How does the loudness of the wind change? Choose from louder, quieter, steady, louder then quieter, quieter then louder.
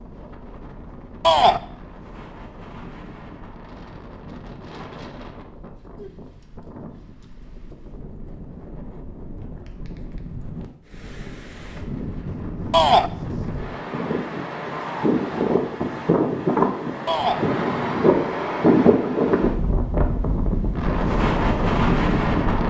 louder.